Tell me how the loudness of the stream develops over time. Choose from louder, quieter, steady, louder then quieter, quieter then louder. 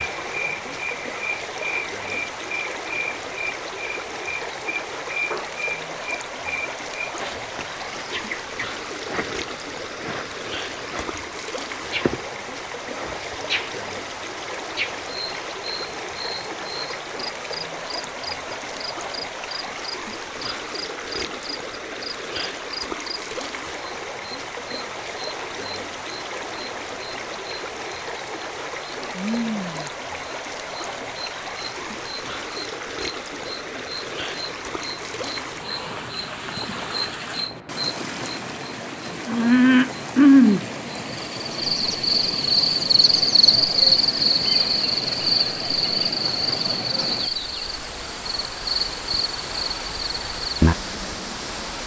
steady.